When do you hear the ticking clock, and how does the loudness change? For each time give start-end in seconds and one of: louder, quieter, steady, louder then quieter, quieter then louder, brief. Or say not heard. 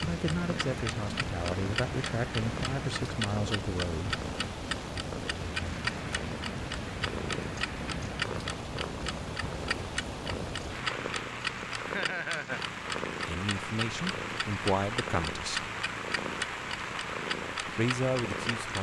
0.0-18.7 steady.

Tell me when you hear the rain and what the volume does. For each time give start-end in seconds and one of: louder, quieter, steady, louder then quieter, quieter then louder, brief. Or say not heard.
0.0-18.7 steady.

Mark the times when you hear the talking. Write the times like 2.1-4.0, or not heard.
0.0-4.2, 13.2-15.7, 17.6-18.7.